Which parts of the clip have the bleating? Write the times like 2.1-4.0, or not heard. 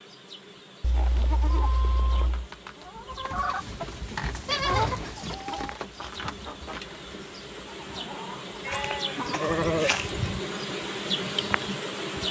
0.8-2.5, 4.5-6.2, 8.7-10.4.